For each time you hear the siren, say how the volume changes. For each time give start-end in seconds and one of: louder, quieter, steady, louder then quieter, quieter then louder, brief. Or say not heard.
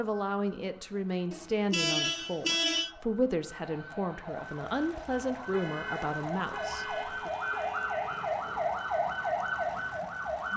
0.0-10.5 louder.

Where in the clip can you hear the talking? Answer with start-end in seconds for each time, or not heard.
0.0-7.3.